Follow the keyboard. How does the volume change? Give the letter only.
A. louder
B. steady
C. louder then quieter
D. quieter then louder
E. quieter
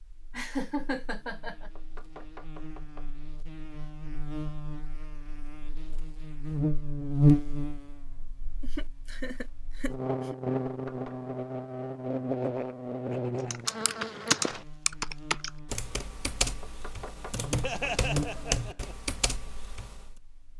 E.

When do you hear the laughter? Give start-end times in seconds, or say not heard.
0.3-1.7, 8.6-10.3, 17.6-18.9.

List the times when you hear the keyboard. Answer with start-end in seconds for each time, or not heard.
13.5-20.1.